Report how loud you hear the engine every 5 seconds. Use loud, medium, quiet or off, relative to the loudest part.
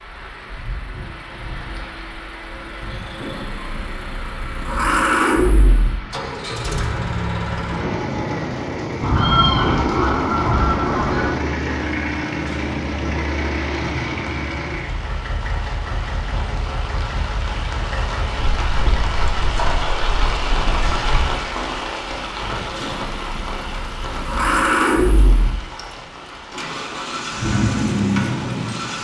medium, loud, loud, medium, loud, loud.